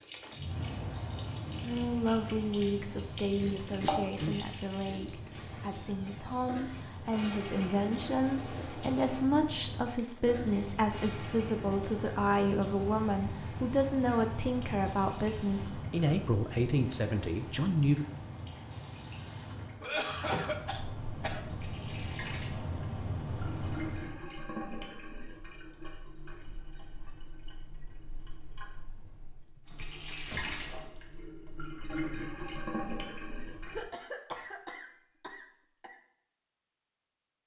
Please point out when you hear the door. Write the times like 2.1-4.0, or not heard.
5.4-6.8, 19.3-20.7, 28.9-30.9.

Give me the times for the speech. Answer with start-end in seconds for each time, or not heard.
1.6-18.1.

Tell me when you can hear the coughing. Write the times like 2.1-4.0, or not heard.
3.4-5.3, 19.8-21.4, 33.6-36.0.